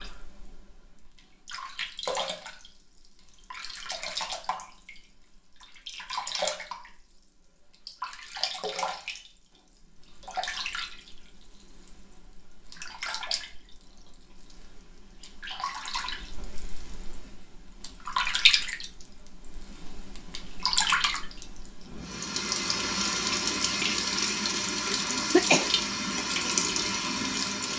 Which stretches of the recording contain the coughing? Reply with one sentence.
You can hear the coughing from 24.9 to 25.7 s.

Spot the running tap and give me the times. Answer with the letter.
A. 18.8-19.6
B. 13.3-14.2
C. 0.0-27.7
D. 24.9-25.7
C.